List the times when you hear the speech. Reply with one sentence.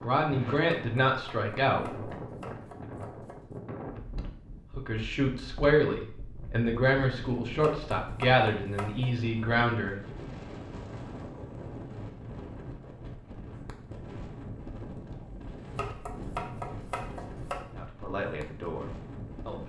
You can hear the speech from 0.0 to 1.9 s, from 4.8 to 10.0 s and from 17.7 to 19.6 s.